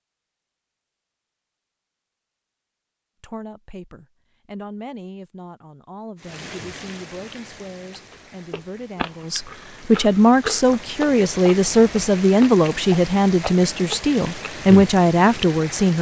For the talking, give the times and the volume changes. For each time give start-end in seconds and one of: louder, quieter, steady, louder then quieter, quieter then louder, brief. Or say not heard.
3.2-15.9 louder.